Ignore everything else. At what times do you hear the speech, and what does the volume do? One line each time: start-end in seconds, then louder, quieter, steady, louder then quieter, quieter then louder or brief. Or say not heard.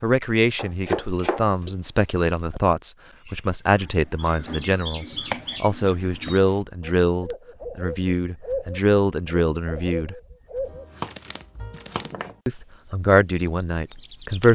0.0-10.2 steady
12.4-14.5 brief.